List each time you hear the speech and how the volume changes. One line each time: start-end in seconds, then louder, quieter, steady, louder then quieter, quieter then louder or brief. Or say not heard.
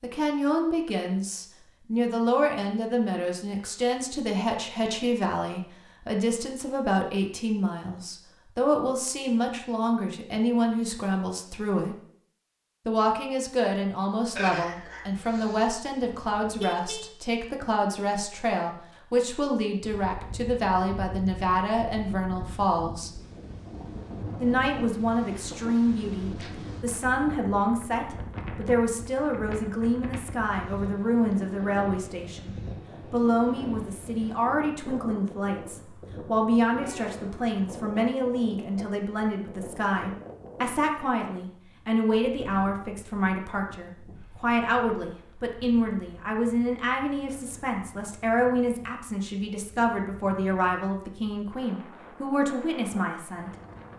0.0-11.9 steady
12.8-23.1 steady
24.4-53.5 steady.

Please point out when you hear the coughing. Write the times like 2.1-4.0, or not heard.
14.3-15.7.